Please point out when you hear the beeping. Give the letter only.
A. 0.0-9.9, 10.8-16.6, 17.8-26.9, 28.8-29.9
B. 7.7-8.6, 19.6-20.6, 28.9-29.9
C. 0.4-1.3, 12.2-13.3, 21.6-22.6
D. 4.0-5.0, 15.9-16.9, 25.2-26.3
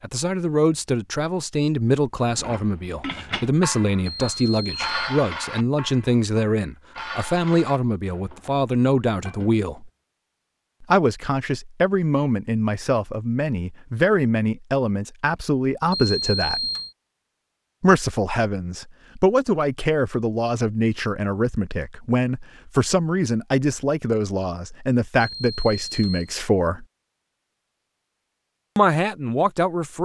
D.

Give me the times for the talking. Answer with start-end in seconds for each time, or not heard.
0.0-9.9, 10.8-16.6, 17.8-26.9, 28.8-29.9.